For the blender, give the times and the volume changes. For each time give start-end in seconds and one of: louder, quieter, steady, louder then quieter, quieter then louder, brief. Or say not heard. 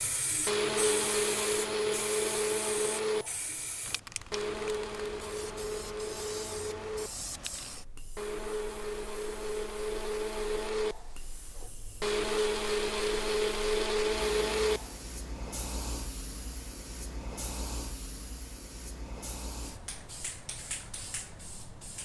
0.1-15.1 quieter then louder.